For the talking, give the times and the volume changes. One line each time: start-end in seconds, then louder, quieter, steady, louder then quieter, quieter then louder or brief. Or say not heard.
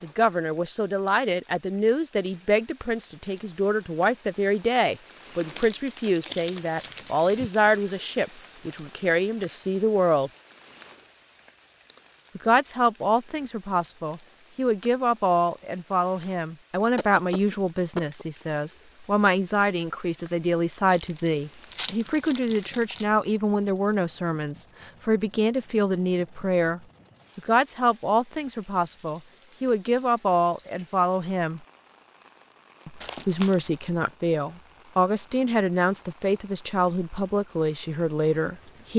0.0-10.3 steady
12.3-31.6 steady
32.9-38.9 steady.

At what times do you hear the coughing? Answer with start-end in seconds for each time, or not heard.
16.9-18.4.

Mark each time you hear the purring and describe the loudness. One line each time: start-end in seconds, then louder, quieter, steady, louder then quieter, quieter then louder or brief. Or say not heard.
not heard.